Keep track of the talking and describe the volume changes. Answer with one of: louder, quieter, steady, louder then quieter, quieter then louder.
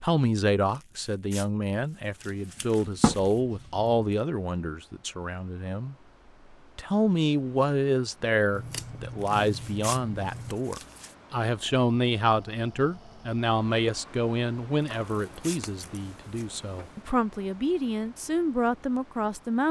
steady.